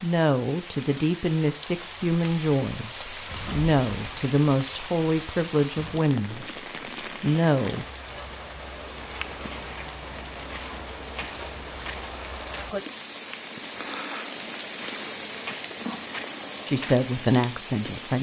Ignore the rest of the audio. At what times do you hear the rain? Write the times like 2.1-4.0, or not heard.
0.0-18.1.